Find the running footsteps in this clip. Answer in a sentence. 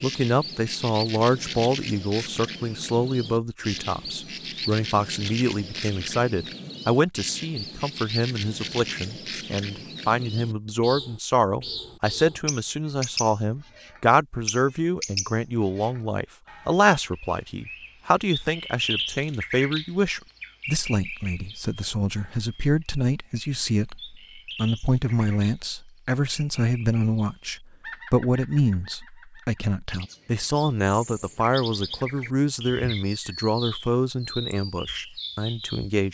The running footsteps can't be heard in this clip.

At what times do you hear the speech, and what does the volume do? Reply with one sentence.
You can hear the speech from 0.0 to 36.0 s, at a steady volume.